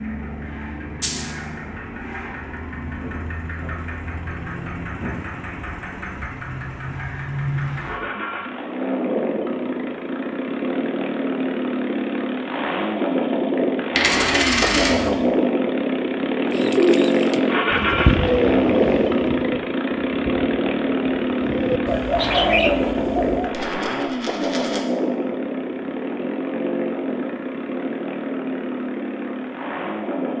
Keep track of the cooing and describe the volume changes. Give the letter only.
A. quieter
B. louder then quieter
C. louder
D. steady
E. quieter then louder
E.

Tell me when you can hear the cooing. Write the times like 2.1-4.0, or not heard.
16.4-23.6.